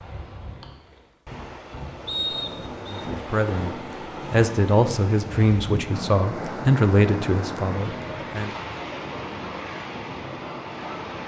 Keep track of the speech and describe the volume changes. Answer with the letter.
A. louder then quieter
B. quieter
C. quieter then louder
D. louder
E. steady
A.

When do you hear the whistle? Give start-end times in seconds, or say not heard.
2.0-3.0.